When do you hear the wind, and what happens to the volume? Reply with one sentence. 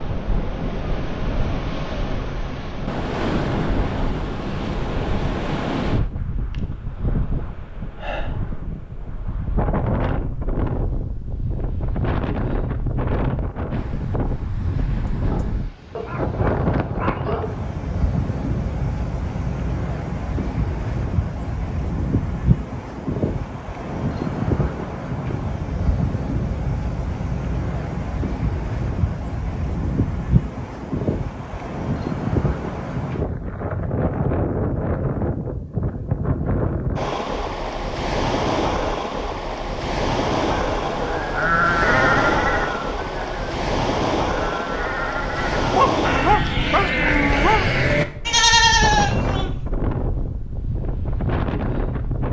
You can hear the wind from 0.0 to 52.2 s, at a steady volume.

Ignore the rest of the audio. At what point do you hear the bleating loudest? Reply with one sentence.
The loudest moment of the bleating is at 49 seconds.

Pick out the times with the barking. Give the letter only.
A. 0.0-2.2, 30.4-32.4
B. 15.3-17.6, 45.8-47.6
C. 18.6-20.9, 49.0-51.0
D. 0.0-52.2
B.